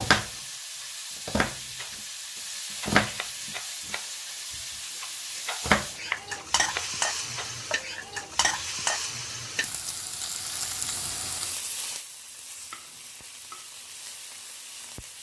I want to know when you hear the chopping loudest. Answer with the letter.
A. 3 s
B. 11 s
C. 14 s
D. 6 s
D.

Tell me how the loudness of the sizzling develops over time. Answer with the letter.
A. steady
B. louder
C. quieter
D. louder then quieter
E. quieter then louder
C.